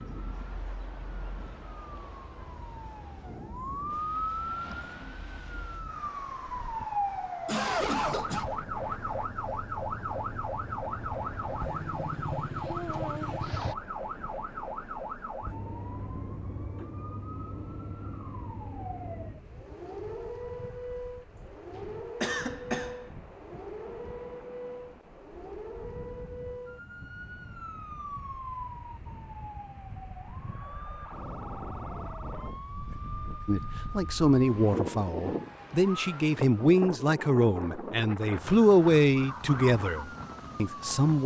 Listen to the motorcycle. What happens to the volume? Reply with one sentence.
The volume of the motorcycle goes up.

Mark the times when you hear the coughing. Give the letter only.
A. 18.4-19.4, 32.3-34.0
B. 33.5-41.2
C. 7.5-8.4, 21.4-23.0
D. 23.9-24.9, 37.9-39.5
C.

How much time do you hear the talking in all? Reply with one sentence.
You can hear the talking for 8 seconds altogether.